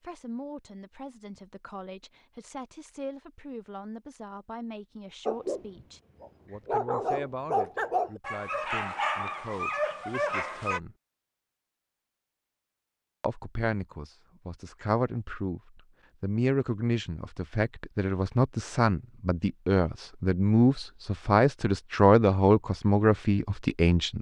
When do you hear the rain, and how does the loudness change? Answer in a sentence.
You can't hear the rain here.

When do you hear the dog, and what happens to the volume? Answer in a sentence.
You can hear the dog from 5.2 to 10.8 s, getting louder.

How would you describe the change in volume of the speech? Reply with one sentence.
The volume of the speech goes up.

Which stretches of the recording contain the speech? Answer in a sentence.
The speech can be heard from 0.0 to 10.9 s and from 13.2 to 24.1 s.